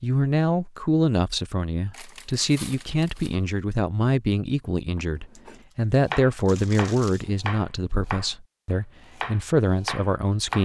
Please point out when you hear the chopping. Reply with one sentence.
You can hear the chopping from 5.0 to 10.5 s.